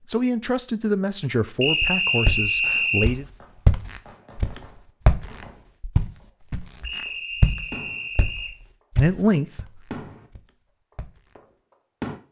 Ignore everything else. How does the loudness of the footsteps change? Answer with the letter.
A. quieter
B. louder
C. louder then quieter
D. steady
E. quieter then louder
A.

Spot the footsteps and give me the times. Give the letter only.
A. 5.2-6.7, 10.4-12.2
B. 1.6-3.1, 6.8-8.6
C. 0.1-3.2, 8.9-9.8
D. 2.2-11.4
D.